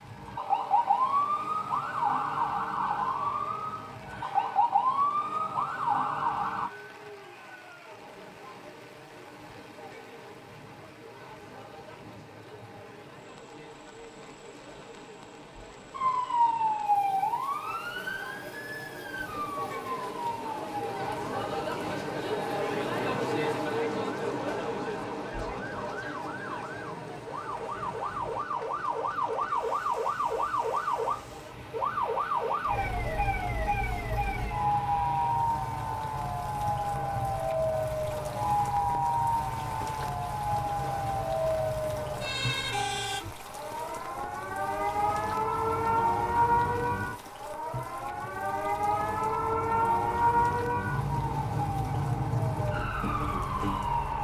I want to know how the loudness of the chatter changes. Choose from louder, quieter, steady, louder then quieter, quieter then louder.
louder then quieter.